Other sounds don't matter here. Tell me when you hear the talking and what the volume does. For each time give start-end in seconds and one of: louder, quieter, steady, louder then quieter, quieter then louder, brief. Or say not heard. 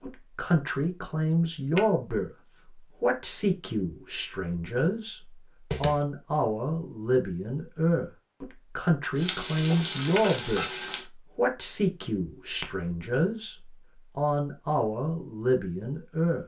0.0-2.3 brief
3.0-5.2 brief
5.8-10.7 steady
11.3-16.4 steady.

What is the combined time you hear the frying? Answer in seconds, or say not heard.
2 s.